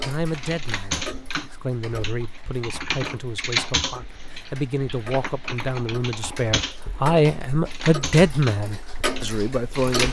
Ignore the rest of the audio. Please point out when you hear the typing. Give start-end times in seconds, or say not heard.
0.2-10.0.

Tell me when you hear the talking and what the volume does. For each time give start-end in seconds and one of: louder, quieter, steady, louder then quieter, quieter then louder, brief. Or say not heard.
0.0-10.0 louder.